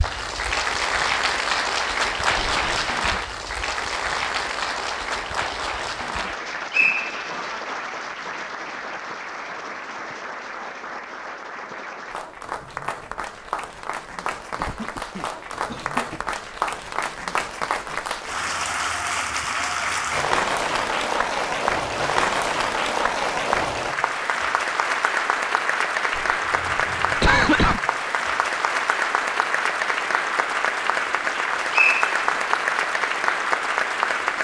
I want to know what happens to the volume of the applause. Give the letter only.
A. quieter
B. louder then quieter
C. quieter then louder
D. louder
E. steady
C.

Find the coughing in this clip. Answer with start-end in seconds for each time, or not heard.
2.4-3.0, 14.6-16.2, 26.1-27.8.